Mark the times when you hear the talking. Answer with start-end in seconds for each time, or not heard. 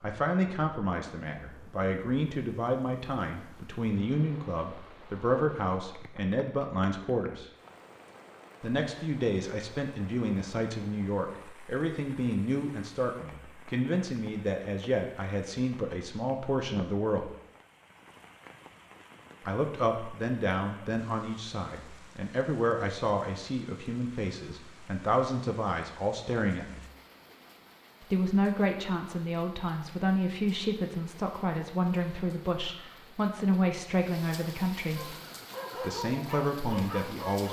0.0-7.5, 8.6-17.3, 19.4-26.9, 28.0-35.1, 35.8-37.4.